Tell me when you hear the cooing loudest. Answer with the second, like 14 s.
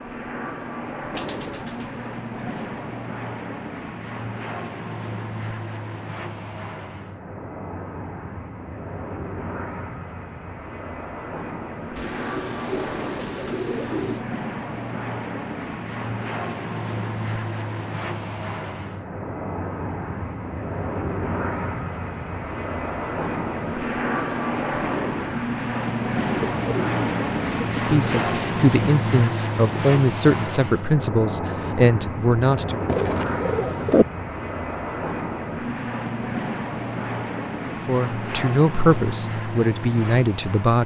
34 s.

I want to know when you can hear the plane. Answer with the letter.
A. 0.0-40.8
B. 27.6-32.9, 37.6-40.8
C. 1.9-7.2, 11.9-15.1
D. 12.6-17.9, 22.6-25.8
A.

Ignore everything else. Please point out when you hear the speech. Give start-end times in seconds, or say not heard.
27.6-32.9, 37.6-40.8.